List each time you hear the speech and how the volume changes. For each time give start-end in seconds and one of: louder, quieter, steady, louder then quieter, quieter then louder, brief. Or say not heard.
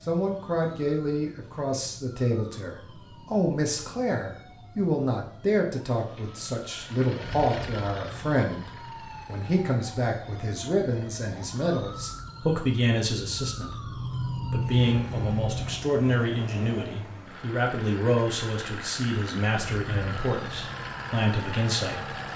0.0-22.1 steady.